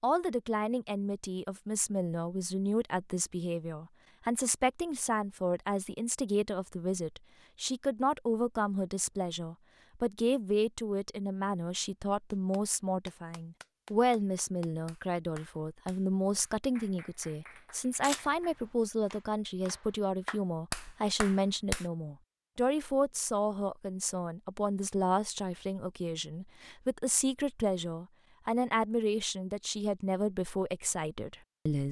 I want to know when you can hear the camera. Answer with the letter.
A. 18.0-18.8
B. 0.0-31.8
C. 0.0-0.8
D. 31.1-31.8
A.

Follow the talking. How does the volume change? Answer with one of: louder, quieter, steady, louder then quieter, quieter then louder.
steady.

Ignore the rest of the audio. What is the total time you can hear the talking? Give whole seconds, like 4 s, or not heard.
32 s.